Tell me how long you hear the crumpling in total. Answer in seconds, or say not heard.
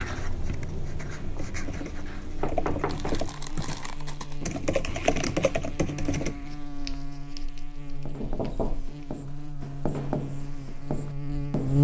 4 s.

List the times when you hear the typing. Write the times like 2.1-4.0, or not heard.
1.2-6.5.